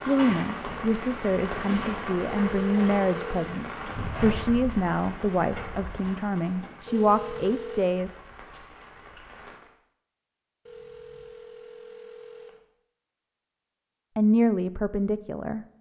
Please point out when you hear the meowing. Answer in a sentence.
The meowing can't be heard in this clip.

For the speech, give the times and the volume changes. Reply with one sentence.
You can hear the speech from 0.1 to 8.1 s, at a steady volume; and briefly from 14.2 to 15.7 s.